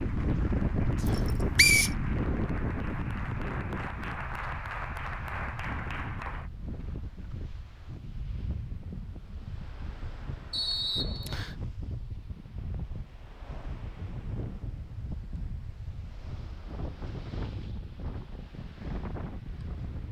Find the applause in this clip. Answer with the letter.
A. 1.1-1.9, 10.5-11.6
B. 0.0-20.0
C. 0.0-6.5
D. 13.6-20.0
C.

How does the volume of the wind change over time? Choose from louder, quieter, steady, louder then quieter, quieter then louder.
quieter.